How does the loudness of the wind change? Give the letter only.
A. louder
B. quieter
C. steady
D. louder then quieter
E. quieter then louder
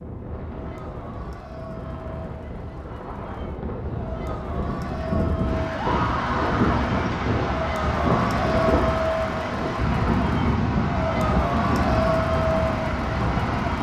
A.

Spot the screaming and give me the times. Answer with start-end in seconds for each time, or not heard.
5.7-6.7.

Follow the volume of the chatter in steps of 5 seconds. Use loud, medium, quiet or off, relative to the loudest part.
quiet, loud, loud.